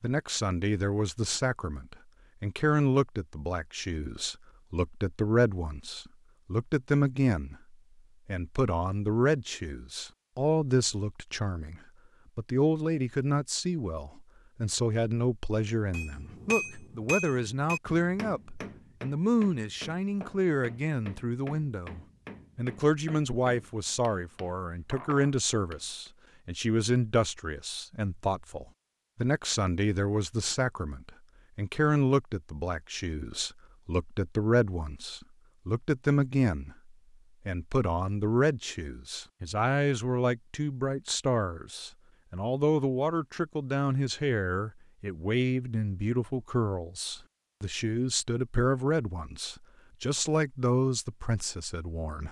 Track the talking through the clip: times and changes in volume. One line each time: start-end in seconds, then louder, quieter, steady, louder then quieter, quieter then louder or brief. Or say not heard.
0.0-52.2 steady.